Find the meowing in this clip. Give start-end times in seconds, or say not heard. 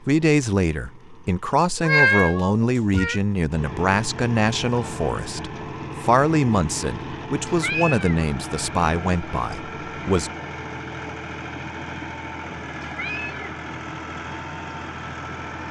1.8-3.2, 7.5-8.2, 12.8-13.4.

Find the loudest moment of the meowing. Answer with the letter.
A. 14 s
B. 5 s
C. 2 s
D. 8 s
C.